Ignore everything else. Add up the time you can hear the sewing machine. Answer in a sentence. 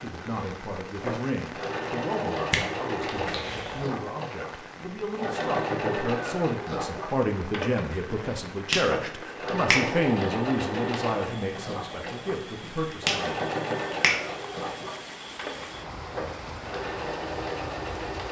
You can hear the sewing machine for 18 seconds altogether.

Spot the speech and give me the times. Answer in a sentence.
You can hear the speech from 0.0 to 13.4 s.